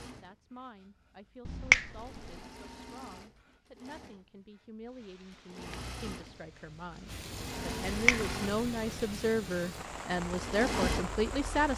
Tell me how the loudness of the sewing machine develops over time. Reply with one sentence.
The volume of the sewing machine goes up.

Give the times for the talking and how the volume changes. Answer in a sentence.
The talking can be heard from 0.0 to 11.7 s, getting louder.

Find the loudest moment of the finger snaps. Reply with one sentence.
The volume of the finger snaps peaks at 2 seconds.